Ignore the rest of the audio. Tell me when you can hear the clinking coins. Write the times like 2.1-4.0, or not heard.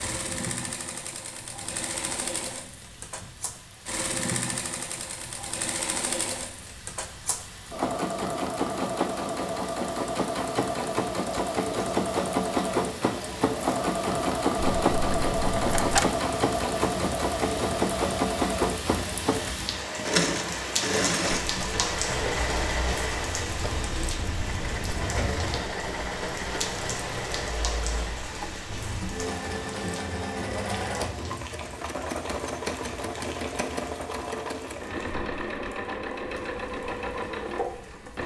14.6-16.1.